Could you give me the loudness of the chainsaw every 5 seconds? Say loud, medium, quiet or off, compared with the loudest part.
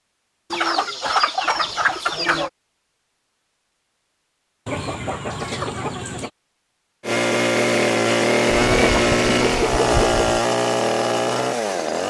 off, loud, loud.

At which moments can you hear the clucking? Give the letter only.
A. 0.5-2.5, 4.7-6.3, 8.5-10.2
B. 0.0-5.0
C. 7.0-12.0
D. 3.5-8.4
A.